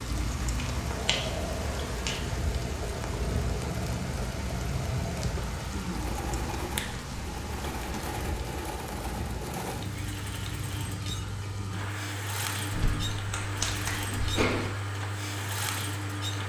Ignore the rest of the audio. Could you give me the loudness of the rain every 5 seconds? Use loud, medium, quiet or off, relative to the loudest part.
loud, loud, medium, medium.